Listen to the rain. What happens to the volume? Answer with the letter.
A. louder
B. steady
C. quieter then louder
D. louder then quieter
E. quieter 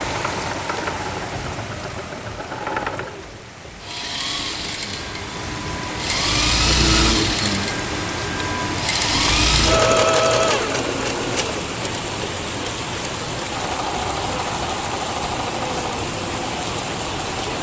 A.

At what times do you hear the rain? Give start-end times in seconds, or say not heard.
0.0-17.5.